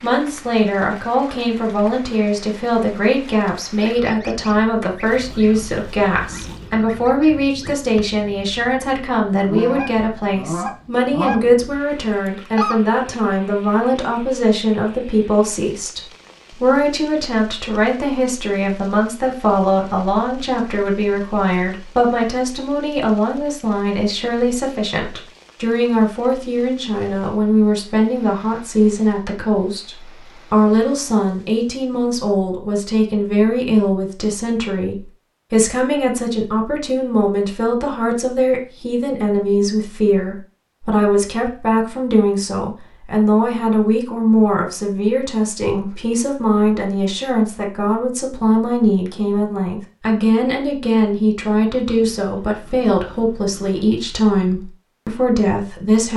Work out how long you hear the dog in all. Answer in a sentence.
You can't hear the dog here.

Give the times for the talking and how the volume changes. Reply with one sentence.
The talking can be heard from 0.0 to 56.1 s, at a steady volume.